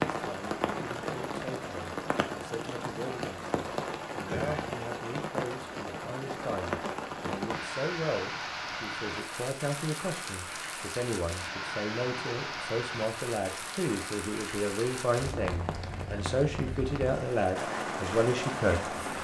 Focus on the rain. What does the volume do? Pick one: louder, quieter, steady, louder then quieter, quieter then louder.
steady.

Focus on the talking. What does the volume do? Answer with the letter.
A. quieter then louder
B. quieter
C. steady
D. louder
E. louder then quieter
D.